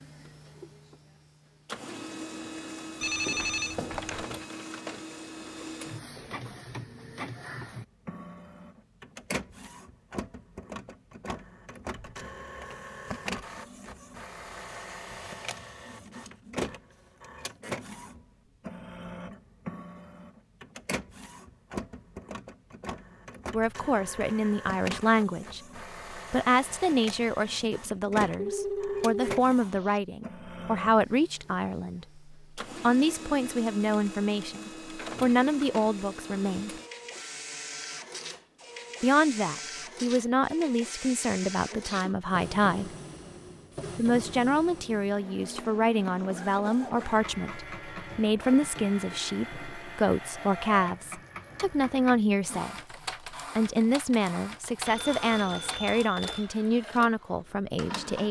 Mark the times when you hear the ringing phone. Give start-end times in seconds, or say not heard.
3.0-4.2, 28.4-30.0, 54.9-56.5.